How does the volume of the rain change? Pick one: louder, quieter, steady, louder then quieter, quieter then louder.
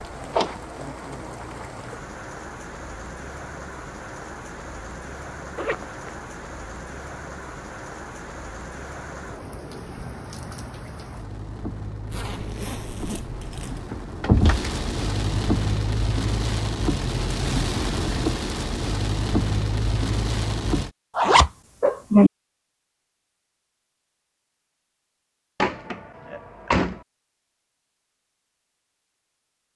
louder.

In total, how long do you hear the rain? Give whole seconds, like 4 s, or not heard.
21 s.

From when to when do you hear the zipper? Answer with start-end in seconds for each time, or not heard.
5.5-6.2, 12.1-13.8, 21.1-22.3.